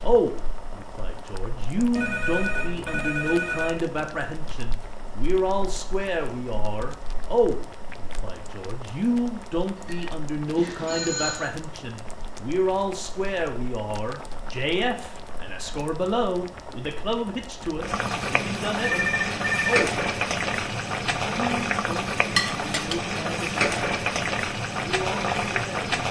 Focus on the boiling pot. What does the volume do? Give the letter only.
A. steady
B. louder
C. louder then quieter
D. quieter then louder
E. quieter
B.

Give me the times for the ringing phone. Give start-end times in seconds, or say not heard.
1.9-3.9, 10.8-11.5, 18.8-19.9.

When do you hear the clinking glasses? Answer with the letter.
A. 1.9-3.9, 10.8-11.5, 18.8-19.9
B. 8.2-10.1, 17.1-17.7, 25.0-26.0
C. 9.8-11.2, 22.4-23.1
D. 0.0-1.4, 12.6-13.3
C.